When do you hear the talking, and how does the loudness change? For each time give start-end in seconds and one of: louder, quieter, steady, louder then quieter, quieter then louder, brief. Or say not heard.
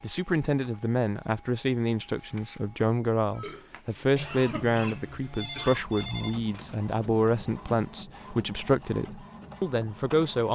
0.0-10.5 steady.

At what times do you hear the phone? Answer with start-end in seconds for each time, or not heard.
5.3-6.8.